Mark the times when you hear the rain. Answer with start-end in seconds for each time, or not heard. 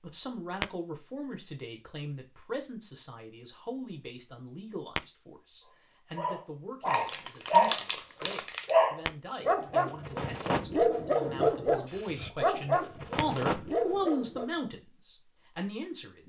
not heard.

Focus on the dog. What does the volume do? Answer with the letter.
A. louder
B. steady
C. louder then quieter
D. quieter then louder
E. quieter
E.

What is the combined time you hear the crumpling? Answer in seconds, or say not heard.
2 s.